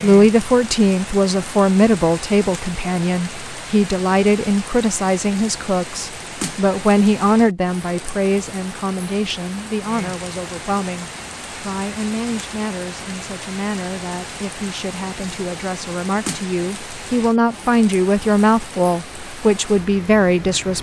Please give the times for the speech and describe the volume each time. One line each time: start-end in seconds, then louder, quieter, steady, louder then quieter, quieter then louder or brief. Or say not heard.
0.0-20.7 quieter then louder.